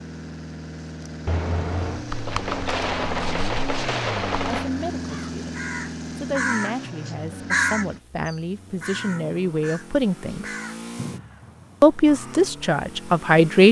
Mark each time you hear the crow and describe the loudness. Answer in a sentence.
You can hear the crow from 5.0 to 12.6 s, getting louder then quieter.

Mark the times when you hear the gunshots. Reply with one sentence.
You can hear the gunshots from 1.2 to 4.7 s.